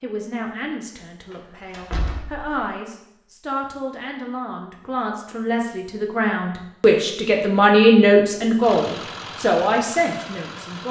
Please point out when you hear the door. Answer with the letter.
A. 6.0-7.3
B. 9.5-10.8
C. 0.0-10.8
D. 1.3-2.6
D.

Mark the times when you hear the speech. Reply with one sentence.
You can hear the speech from 0.0 to 10.8 s.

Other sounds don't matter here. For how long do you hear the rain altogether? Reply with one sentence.
The rain can't be heard in this clip.